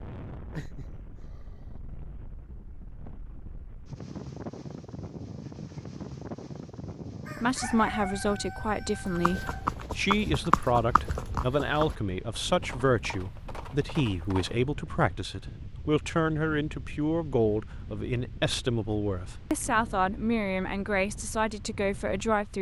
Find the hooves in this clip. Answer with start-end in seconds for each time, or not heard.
9.1-14.6.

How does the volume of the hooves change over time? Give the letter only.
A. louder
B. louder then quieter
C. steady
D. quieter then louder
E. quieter
E.